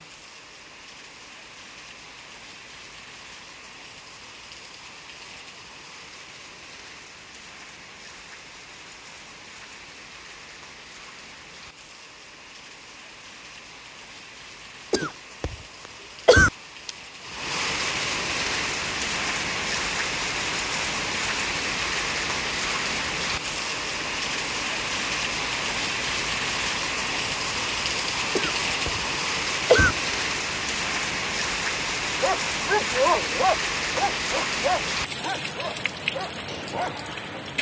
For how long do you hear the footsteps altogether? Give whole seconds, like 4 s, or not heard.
not heard.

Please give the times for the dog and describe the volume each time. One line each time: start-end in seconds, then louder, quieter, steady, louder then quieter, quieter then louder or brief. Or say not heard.
32.2-37.0 quieter.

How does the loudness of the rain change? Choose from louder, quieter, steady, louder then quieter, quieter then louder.
louder.